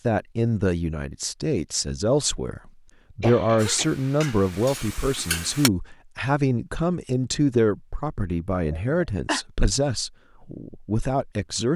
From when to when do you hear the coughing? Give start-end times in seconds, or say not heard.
3.2-3.9, 8.7-9.4.